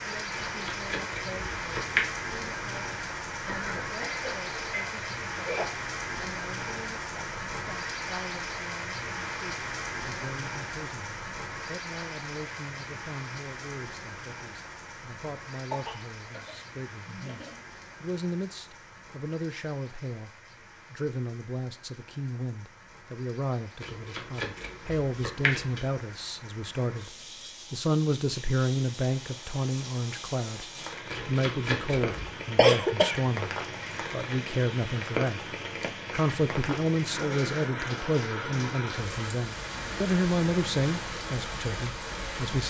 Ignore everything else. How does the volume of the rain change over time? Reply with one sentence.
The loudness of the rain goes down, then up.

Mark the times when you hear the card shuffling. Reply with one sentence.
The card shuffling can be heard from 0.3 to 2.1 s, from 23.8 to 25.8 s and from 31.1 to 32.3 s.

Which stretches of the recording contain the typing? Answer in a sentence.
The typing can't be heard in this clip.